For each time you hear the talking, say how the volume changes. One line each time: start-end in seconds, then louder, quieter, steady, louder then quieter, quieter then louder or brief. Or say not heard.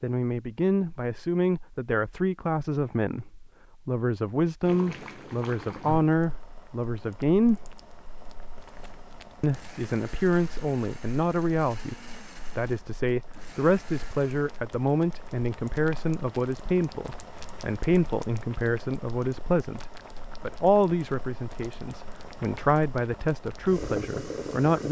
0.0-7.6 steady
9.4-24.8 steady.